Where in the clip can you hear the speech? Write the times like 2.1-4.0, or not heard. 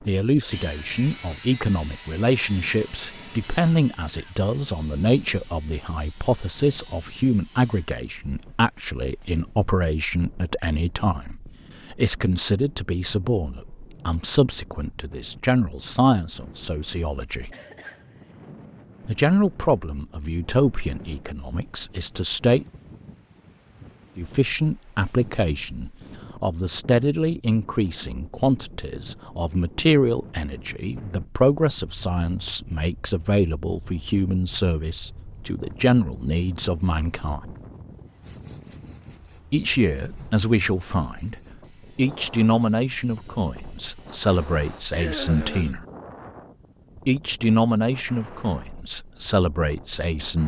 0.1-17.5, 19.1-22.6, 24.1-37.5, 39.5-45.9, 47.0-50.4.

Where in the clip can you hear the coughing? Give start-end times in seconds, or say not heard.
3.5-4.3, 17.5-18.4, 44.9-45.9.